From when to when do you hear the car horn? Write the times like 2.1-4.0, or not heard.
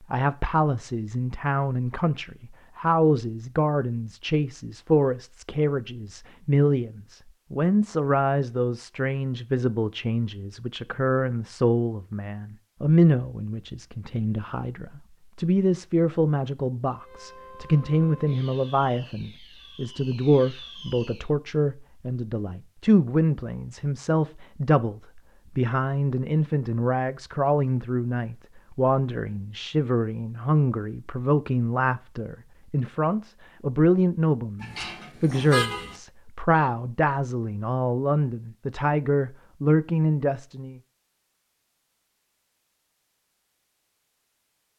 34.6-36.0.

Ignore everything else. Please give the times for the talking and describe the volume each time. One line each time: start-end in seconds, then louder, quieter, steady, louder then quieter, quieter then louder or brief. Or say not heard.
0.0-40.8 steady.